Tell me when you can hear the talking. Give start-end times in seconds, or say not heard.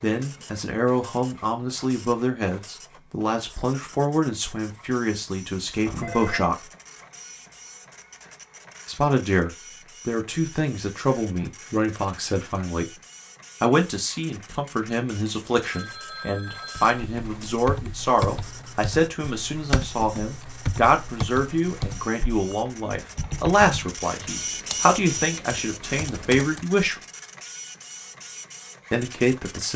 0.0-6.7, 8.8-12.9, 13.6-26.9, 28.9-29.7.